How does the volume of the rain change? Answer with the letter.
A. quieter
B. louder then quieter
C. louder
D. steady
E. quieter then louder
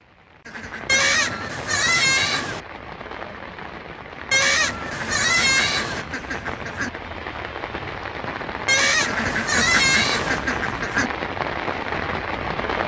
C.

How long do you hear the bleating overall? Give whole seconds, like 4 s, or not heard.
5 s.